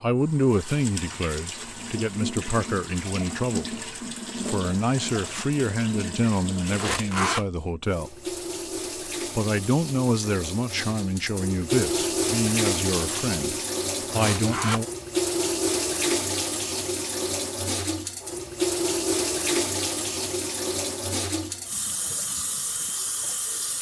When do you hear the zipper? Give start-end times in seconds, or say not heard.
6.7-7.5, 14.1-14.8.